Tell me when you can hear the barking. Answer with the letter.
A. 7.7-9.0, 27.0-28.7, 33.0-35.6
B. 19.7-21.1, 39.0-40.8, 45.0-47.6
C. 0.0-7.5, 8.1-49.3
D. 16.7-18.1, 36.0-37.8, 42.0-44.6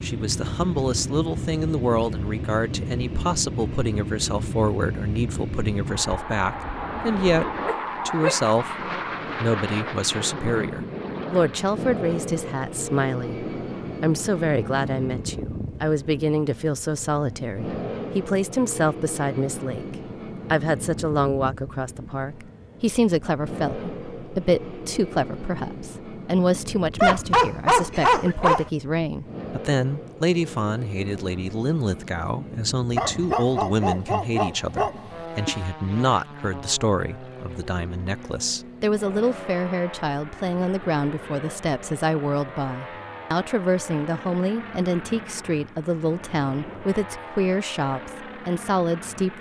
A.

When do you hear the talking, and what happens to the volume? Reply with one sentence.
You can hear the talking from 0.0 to 7.5 s, at a steady volume; and from 8.1 to 49.3 s, at a steady volume.